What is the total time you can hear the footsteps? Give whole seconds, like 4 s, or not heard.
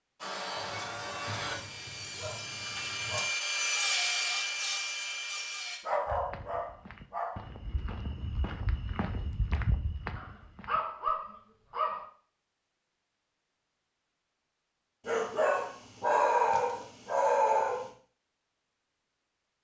5 s.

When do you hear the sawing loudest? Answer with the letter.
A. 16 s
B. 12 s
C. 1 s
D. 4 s
D.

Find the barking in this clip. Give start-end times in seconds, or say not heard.
0.6-3.2, 5.8-7.4, 10.2-12.1, 15.1-17.9.